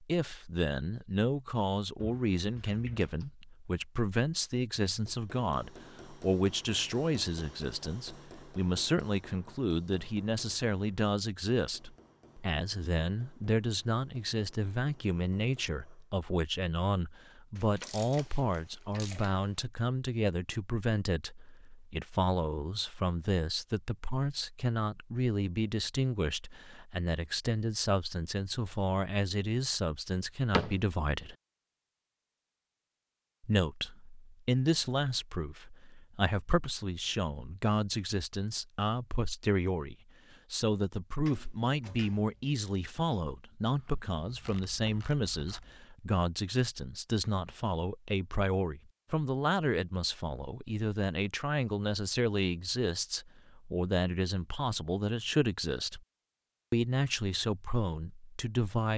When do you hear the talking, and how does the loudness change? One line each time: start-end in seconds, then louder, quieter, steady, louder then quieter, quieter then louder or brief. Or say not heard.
0.0-31.4 steady
33.4-56.0 steady
56.7-58.9 brief.